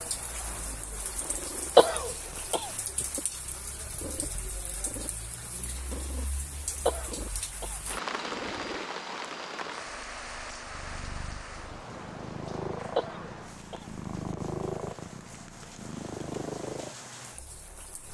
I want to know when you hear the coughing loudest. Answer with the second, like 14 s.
2 s.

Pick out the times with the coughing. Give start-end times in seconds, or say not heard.
1.8-2.7, 6.8-7.8, 12.9-13.8.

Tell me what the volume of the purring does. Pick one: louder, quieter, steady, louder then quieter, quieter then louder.
louder.